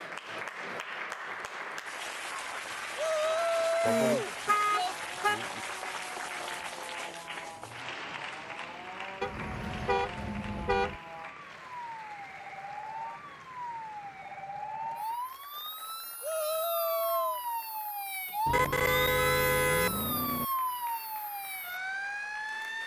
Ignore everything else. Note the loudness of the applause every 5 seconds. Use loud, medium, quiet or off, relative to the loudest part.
loud, loud, medium, quiet, quiet.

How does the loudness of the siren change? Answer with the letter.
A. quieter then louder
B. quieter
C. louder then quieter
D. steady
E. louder
E.